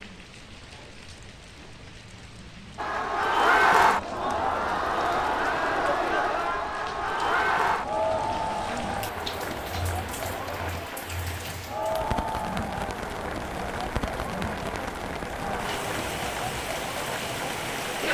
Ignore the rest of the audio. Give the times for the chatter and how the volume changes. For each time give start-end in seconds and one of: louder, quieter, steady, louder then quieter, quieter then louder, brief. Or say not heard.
2.8-18.0 quieter.